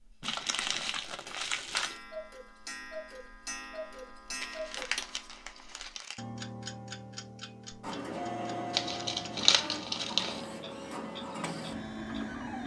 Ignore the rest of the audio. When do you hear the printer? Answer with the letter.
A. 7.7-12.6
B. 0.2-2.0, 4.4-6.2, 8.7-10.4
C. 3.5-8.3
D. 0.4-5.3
A.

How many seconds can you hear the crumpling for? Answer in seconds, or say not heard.
5 s.